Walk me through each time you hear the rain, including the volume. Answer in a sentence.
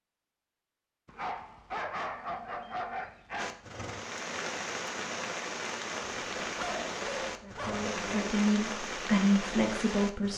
You can hear the rain from 3.4 to 10.3 s, at a steady volume.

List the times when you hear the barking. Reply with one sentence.
You can hear the barking from 1.1 to 3.6 s and from 6.0 to 8.3 s.